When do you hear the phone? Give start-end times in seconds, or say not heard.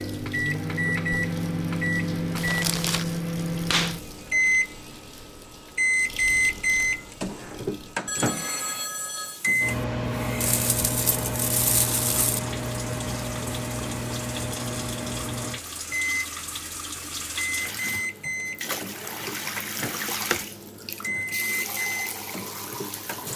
8.1-9.4.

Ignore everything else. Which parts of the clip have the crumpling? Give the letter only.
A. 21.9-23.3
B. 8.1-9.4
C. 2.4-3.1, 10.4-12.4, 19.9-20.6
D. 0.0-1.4
C.